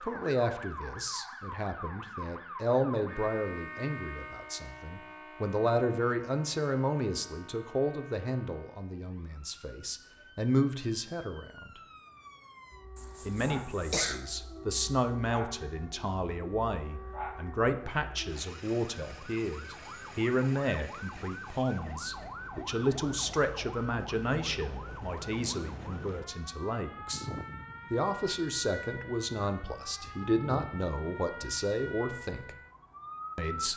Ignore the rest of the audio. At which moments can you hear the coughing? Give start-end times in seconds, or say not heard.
12.9-14.2.